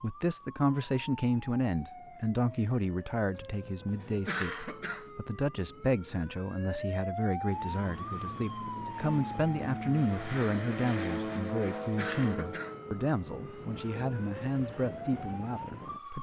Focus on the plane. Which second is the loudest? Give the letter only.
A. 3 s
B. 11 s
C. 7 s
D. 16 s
B.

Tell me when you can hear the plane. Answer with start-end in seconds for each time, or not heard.
7.3-12.8.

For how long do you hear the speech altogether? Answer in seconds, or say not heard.
16 s.